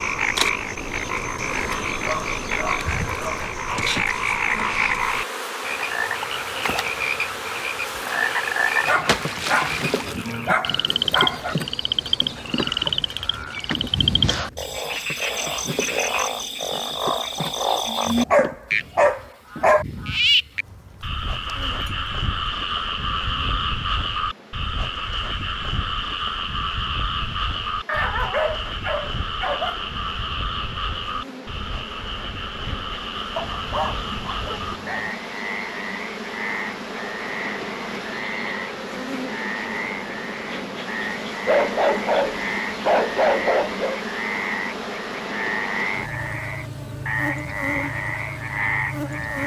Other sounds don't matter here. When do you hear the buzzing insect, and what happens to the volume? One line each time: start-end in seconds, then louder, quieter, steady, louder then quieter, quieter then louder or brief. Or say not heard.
0.1-49.4 quieter then louder.